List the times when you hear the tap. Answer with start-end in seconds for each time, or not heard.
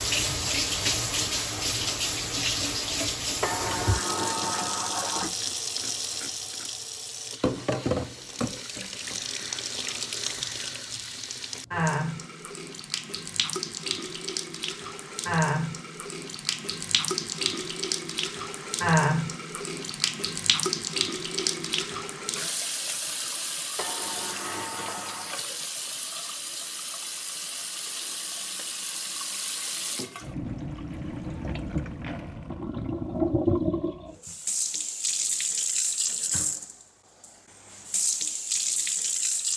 0.0-39.5.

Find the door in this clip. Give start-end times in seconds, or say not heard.
3.4-5.3, 23.8-25.4.